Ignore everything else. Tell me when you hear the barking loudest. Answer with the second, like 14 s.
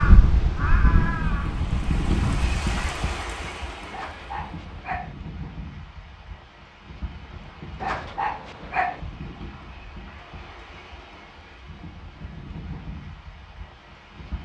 9 s.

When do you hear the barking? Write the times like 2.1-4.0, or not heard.
3.9-5.2, 7.8-9.0.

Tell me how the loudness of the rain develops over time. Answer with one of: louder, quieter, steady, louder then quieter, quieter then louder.
quieter.